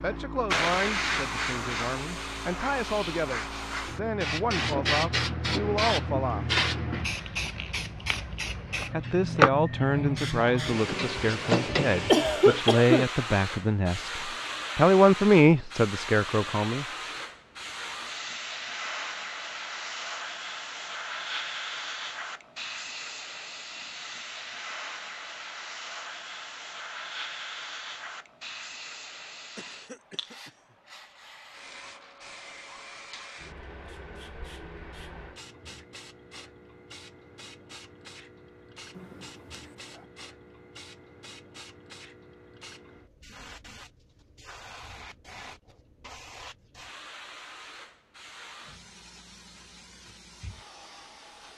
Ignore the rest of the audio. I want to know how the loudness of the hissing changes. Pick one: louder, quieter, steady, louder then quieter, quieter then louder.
quieter.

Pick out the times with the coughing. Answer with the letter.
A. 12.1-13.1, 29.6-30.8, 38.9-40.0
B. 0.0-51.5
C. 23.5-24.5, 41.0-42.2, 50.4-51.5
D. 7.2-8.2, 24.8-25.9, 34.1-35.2
A.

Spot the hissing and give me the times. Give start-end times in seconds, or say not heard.
0.0-51.5.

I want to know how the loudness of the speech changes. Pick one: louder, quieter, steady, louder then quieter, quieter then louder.
louder.